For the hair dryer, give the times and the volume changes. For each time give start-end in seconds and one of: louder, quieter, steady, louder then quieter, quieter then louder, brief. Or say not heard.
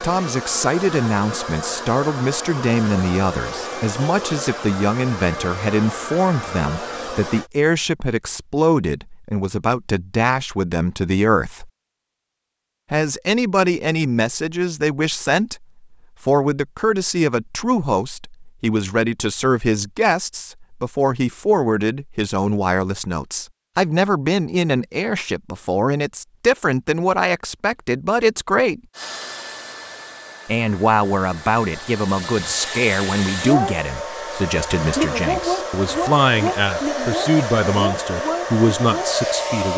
0.0-7.5 steady
28.9-39.7 louder.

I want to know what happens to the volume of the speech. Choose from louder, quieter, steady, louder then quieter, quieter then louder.
steady.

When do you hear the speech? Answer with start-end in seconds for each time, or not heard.
0.0-11.7, 12.9-28.8, 30.4-39.7.